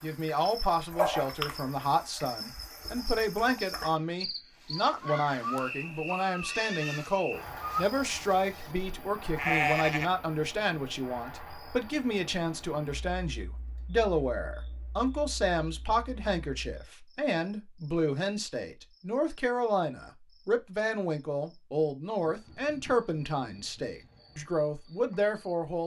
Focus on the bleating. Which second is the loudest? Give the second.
10 s.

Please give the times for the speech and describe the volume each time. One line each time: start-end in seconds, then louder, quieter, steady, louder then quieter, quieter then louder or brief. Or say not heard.
0.0-25.8 steady.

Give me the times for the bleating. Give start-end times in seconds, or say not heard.
4.6-10.1.